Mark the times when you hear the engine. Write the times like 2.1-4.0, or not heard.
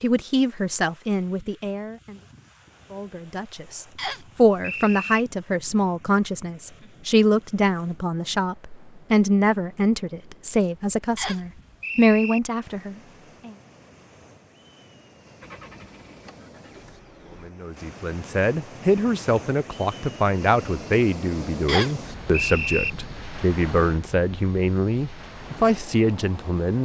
15.4-17.5.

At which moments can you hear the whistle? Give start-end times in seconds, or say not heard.
4.0-5.2, 11.2-12.4, 21.6-22.9.